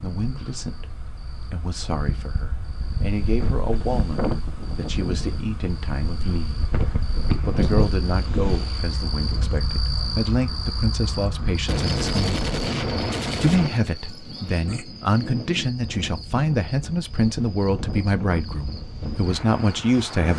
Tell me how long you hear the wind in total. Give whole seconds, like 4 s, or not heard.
20 s.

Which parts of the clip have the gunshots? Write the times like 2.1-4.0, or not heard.
11.7-13.7.